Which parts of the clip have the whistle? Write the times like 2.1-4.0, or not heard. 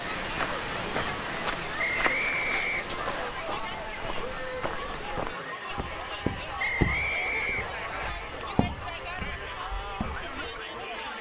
1.8-3.3, 6.5-8.1.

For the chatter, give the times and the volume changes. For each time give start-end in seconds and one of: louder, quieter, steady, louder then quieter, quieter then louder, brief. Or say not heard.
0.0-11.1 steady.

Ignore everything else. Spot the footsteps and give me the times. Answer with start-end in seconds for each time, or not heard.
0.1-10.6.